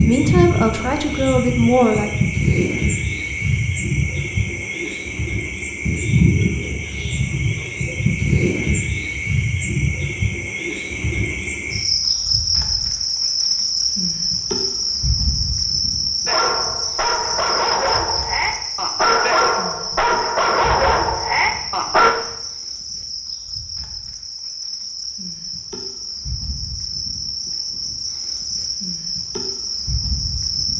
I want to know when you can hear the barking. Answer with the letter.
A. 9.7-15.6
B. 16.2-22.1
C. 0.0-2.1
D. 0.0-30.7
B.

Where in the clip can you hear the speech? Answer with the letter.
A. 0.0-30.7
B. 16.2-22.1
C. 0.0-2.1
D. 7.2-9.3
C.